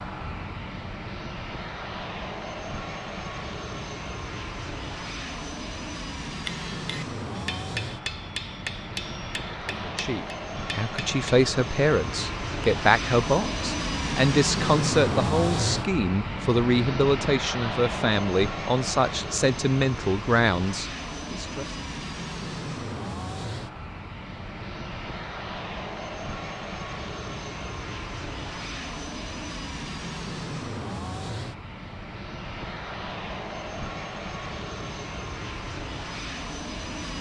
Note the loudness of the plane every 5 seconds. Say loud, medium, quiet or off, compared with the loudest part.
medium, medium, loud, loud, medium, medium, medium, medium.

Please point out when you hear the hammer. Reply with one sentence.
The hammer can be heard from 6.3 to 11.2 s.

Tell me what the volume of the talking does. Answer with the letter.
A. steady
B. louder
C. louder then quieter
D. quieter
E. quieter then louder
A.